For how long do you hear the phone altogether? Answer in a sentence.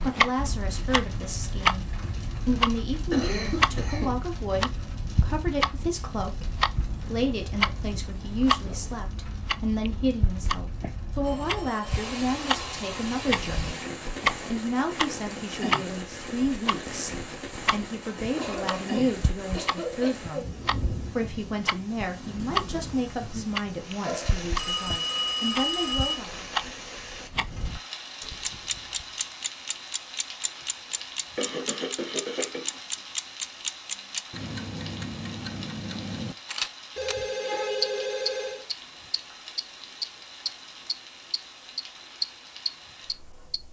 You can hear the phone for 5 seconds altogether.